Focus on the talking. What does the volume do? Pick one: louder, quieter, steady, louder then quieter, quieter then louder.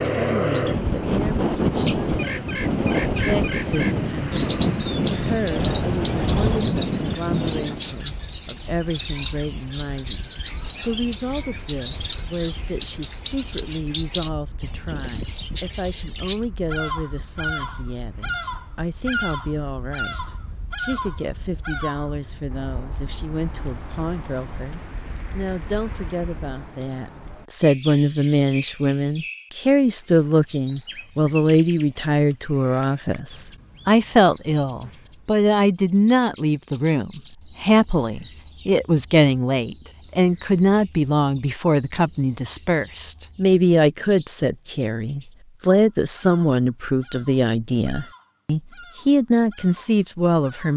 louder.